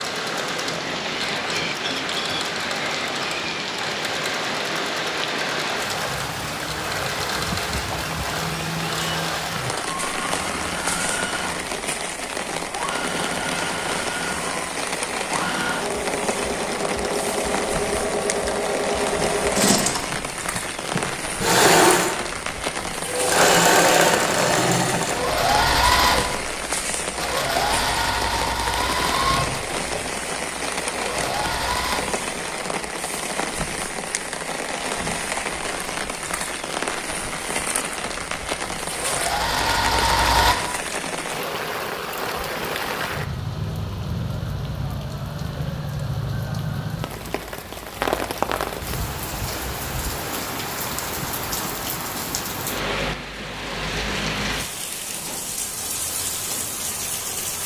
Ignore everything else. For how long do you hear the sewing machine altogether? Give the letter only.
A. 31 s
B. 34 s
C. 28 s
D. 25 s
B.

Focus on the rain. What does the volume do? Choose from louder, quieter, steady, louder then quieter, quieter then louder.
steady.